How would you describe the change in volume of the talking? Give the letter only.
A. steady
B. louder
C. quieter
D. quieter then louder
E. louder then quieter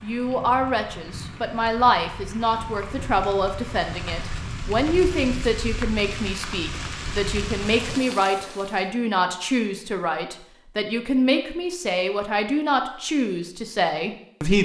A.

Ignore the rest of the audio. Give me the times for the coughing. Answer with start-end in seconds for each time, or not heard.
not heard.